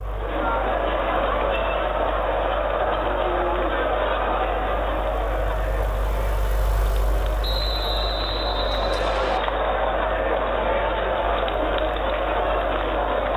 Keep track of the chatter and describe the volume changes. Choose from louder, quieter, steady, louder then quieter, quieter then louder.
quieter then louder.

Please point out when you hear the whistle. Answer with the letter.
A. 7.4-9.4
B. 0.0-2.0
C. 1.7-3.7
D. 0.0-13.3
A.